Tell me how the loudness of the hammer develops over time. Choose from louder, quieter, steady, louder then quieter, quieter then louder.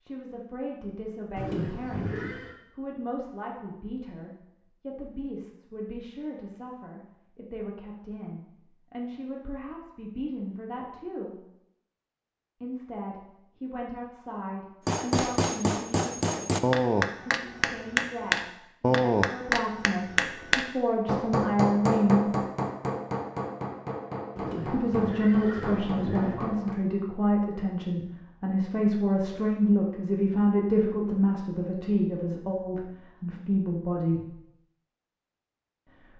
quieter.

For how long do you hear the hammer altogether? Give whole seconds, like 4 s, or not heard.
12 s.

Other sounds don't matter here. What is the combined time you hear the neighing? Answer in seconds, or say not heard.
3 s.